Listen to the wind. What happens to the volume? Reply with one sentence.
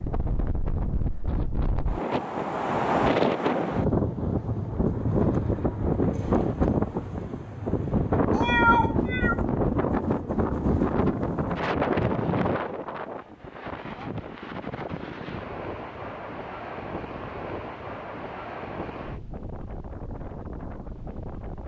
The volume of the wind goes down.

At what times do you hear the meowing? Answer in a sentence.
You can hear the meowing from 8.3 to 9.3 s.